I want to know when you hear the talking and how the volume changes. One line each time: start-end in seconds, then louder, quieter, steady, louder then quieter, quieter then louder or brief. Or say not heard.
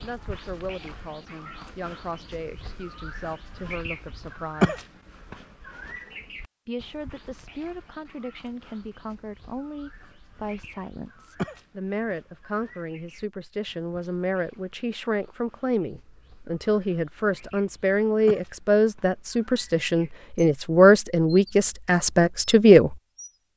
0.0-4.8 steady
6.7-22.9 louder.